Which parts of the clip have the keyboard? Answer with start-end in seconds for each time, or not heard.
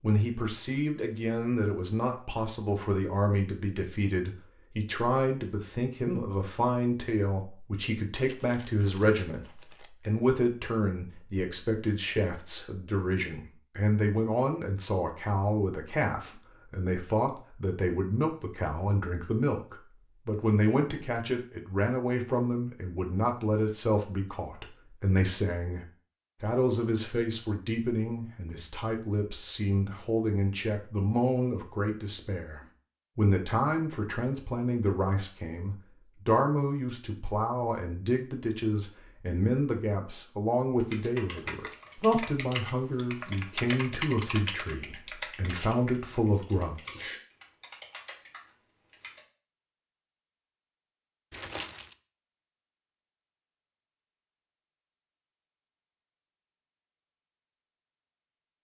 40.8-49.2.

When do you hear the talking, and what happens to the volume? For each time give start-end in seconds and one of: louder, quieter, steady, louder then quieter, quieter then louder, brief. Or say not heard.
0.0-47.0 steady.